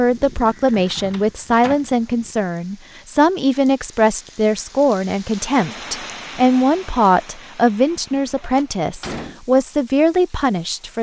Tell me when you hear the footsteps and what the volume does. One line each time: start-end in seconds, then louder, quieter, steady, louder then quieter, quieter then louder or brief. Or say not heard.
not heard.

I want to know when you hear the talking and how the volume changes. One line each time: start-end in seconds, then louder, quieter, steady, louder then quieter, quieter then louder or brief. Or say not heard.
0.0-10.9 steady.